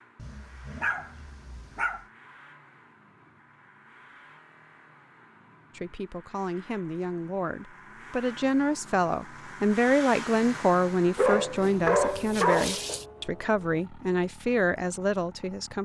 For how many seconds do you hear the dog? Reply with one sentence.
You can hear the dog for 4 seconds altogether.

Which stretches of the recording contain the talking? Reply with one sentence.
You can hear the talking from 5.8 to 15.8 s.